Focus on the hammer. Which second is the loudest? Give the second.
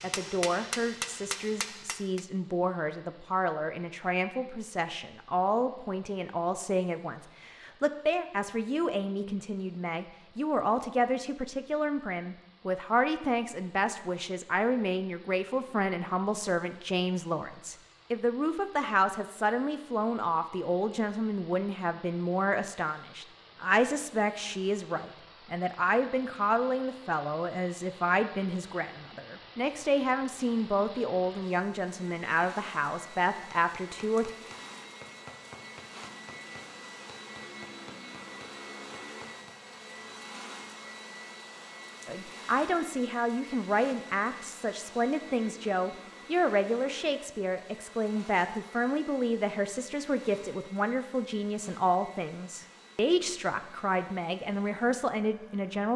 1 s.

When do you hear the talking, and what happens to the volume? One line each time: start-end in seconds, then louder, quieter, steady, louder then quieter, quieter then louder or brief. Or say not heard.
0.0-34.3 steady
42.0-55.9 steady.